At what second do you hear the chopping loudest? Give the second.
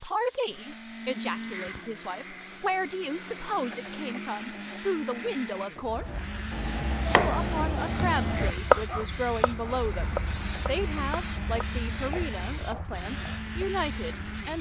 9 s.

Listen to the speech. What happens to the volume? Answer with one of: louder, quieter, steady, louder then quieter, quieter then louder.
steady.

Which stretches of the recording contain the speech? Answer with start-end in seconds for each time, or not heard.
0.0-6.2, 7.2-14.5.